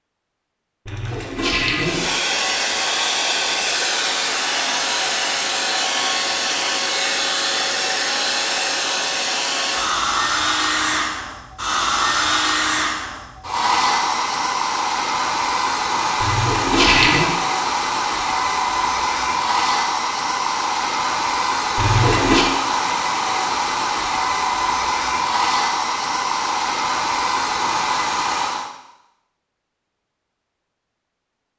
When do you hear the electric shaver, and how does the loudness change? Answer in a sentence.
You can't hear the electric shaver here.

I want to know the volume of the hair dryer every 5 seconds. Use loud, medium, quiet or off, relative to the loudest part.
loud, loud, loud, loud, loud, loud, off.